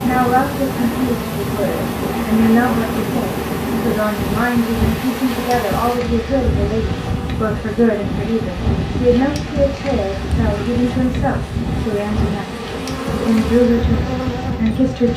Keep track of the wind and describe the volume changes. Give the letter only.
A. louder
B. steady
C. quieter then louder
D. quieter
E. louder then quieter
B.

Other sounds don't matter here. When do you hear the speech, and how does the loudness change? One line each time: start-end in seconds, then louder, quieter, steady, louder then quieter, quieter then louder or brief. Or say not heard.
0.0-15.1 steady.